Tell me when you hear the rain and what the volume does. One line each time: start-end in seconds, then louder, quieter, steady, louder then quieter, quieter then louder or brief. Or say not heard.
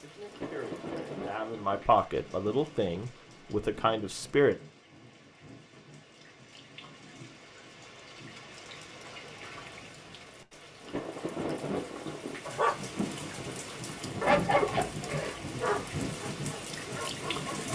0.0-17.7 quieter then louder.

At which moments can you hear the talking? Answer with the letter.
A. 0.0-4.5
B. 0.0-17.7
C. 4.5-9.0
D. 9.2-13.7
A.